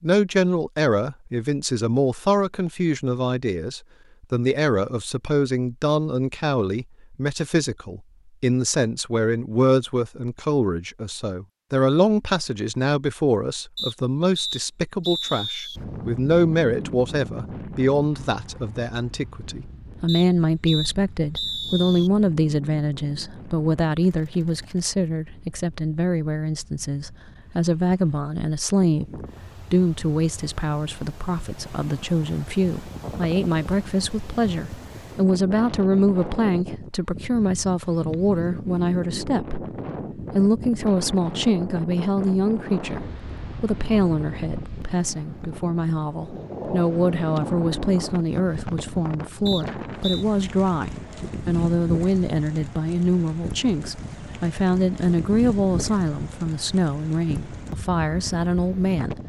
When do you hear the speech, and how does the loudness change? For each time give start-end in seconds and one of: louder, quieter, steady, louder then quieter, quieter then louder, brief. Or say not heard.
0.0-59.2 steady.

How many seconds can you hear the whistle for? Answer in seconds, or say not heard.
5 s.